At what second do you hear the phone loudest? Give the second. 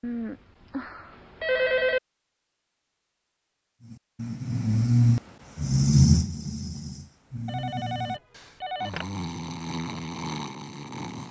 2 s.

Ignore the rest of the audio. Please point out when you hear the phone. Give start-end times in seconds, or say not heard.
0.0-2.0, 7.5-9.1.